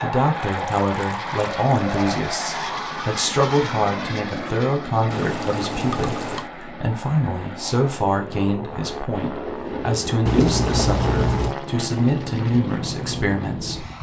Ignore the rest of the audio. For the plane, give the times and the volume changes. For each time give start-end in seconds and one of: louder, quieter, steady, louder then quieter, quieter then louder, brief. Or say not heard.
0.0-13.9 quieter then louder.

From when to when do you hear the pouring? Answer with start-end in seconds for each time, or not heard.
0.5-1.9, 5.1-6.5, 10.2-11.6.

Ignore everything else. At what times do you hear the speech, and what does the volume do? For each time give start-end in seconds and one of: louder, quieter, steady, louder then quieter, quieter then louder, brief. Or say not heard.
0.0-13.8 steady.